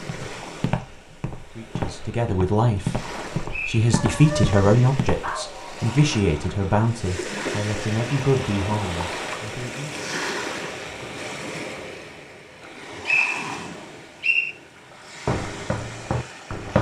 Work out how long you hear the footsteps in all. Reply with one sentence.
You can hear the footsteps for 7 seconds altogether.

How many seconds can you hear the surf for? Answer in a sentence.
The surf can be heard for 17 seconds in total.